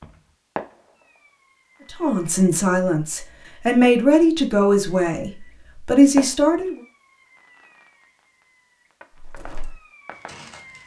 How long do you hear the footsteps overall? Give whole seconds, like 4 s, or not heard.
2 s.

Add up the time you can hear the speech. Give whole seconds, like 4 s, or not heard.
5 s.